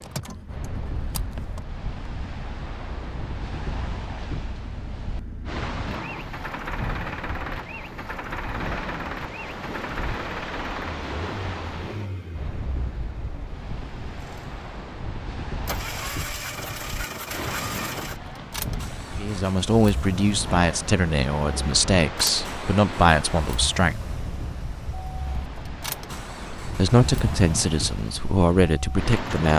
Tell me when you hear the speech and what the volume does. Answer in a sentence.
You can hear the speech from 19.1 to 24.1 s, at a steady volume; and briefly from 26.6 to 29.5 s.